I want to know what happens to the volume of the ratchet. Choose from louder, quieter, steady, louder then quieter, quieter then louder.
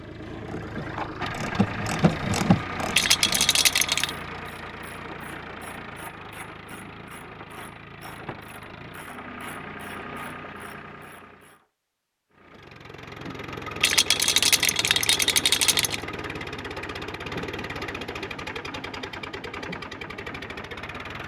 quieter.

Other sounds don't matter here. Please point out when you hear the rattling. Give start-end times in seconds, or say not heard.
2.9-4.1, 13.8-16.0.